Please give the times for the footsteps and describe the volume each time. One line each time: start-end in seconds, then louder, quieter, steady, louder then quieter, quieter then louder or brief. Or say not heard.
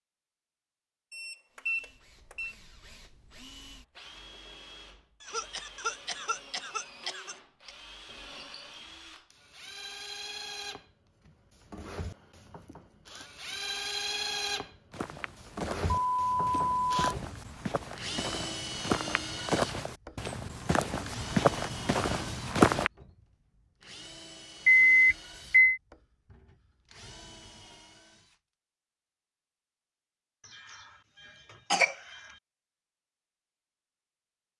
14.9-22.9 louder.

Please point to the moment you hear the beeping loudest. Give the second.
25 s.